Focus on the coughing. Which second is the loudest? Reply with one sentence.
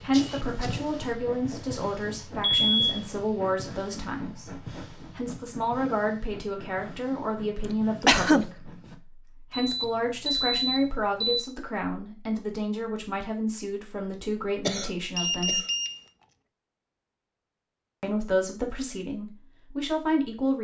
The volume of the coughing peaks at 8 seconds.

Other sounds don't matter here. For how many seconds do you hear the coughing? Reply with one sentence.
You can hear the coughing for 3 seconds altogether.